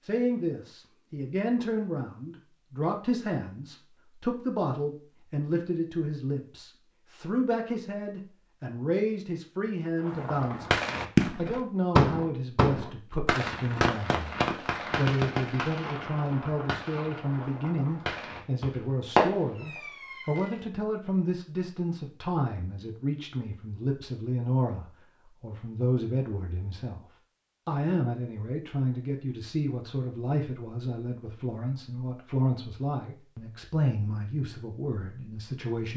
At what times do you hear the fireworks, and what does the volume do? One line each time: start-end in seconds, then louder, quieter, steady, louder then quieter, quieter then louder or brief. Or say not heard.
10.0-20.6 quieter then louder.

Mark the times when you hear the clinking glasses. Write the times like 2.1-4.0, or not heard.
not heard.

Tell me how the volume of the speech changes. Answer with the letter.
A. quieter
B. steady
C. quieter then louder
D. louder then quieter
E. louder
B.